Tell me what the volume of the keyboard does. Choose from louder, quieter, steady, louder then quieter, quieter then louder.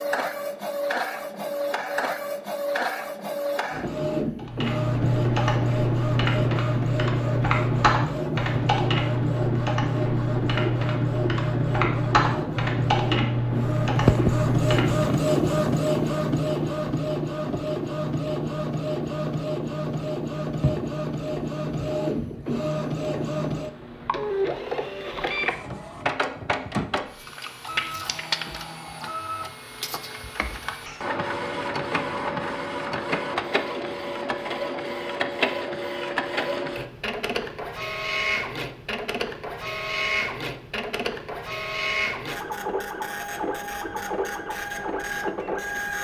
steady.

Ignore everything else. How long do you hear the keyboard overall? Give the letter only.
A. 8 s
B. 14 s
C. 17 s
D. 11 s
D.